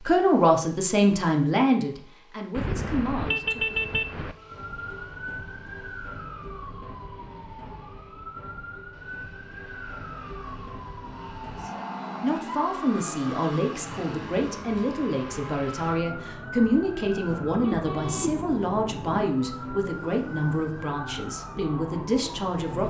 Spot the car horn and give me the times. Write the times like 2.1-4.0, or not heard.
2.5-4.3, 17.4-19.2.